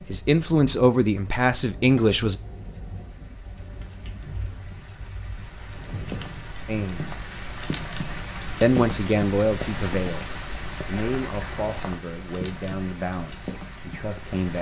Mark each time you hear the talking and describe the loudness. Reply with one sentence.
The talking can be heard briefly from 0.1 to 2.4 s; briefly from 6.7 to 7.1 s; and from 8.6 to 14.5 s, getting quieter.